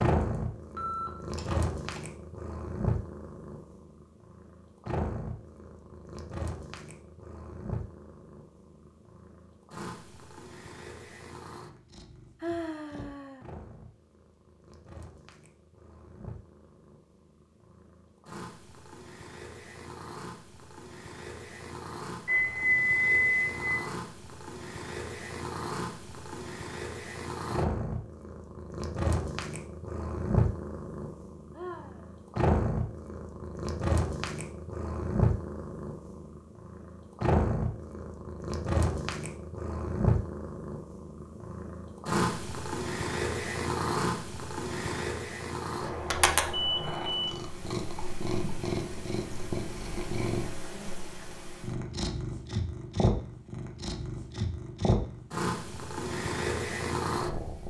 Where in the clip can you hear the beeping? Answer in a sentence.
You can hear the beeping from 0.8 to 2.0 s, from 22.2 to 23.9 s and from 45.8 to 47.4 s.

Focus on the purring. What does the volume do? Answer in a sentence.
The volume of the purring goes down, then up.